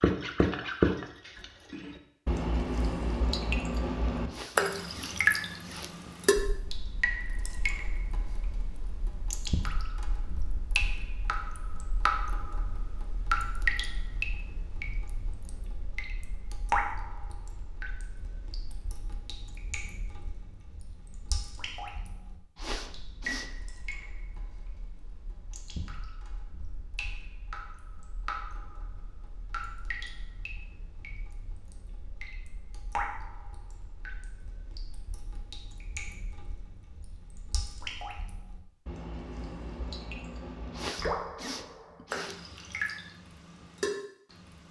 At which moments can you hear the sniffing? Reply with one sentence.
The sniffing can be heard from 4.3 to 5.9 s, from 22.6 to 23.8 s and from 40.7 to 42.4 s.